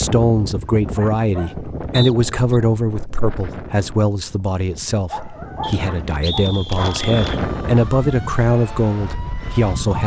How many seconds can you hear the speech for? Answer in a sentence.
You can hear the speech for 10 seconds altogether.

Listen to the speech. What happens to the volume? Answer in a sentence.
The volume of the speech goes down, then up.